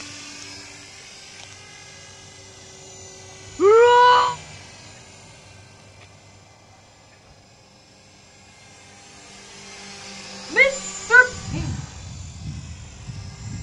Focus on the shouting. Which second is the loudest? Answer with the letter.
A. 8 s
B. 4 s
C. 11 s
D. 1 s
B.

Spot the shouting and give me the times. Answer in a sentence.
You can hear the shouting from 3.5 to 4.3 s and from 10.5 to 11.6 s.